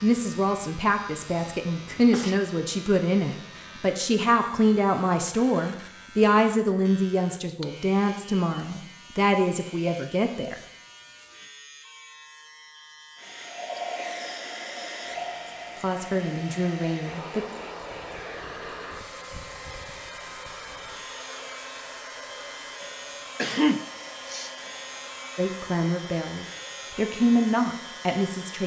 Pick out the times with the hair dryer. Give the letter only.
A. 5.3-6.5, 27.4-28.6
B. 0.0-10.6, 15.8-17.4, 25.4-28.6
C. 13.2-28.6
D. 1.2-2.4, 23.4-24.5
C.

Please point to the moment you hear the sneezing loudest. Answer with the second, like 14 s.
24 s.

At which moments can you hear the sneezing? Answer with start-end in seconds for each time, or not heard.
1.2-2.4, 23.4-24.5.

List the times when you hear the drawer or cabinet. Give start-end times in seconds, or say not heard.
not heard.